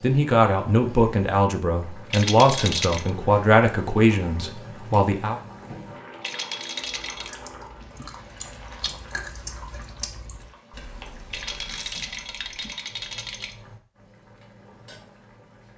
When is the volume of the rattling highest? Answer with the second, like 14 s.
3 s.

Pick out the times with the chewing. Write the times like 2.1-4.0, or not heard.
7.0-12.8.